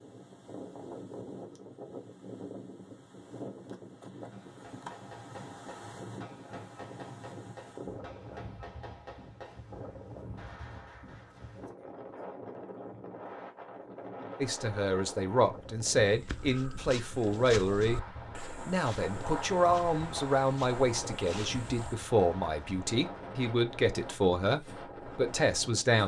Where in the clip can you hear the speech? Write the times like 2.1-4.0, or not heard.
14.4-18.0, 18.6-26.0.